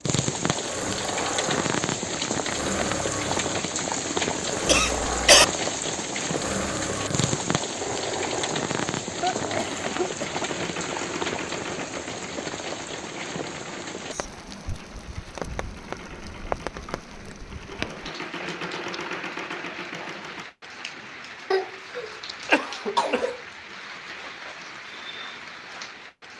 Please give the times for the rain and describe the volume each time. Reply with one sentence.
You can hear the rain from 0.0 to 26.3 s, getting quieter.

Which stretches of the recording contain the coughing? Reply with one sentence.
The coughing can be heard from 4.7 to 5.5 s, from 9.2 to 10.4 s and from 21.5 to 23.4 s.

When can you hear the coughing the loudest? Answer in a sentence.
The loudest moment of the coughing is at 5 seconds.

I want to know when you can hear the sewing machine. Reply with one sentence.
The sewing machine can be heard from 0.0 to 20.4 s.